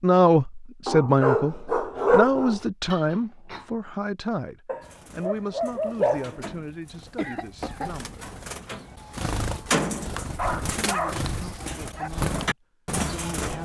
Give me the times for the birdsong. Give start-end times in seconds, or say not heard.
4.8-13.6.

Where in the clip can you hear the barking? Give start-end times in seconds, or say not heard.
0.8-2.6, 4.7-6.5, 10.2-12.1.